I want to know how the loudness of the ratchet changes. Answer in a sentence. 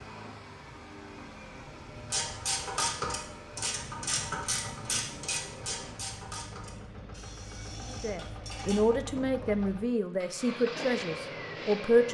The volume of the ratchet goes down.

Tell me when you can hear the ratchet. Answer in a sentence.
The ratchet can be heard from 1.9 to 8.8 s.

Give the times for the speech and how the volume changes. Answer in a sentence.
You can hear the speech from 7.9 to 12.0 s, getting quieter.